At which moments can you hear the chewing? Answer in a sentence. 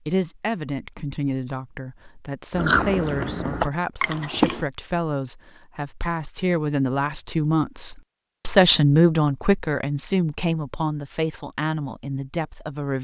You can hear the chewing from 2.5 to 4.7 s.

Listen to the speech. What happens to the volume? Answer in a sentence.
The volume of the speech goes up, then down.